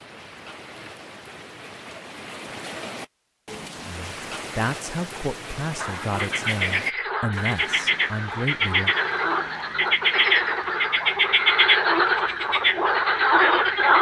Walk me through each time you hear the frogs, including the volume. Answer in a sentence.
You can hear the frogs from 5.8 to 13.9 s, getting louder.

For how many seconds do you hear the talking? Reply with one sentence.
The talking can be heard for 5 seconds in total.